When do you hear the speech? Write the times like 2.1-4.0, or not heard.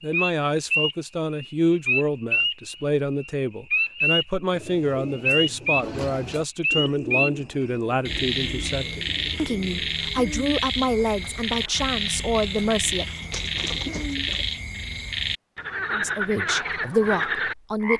0.0-13.1, 15.9-17.9.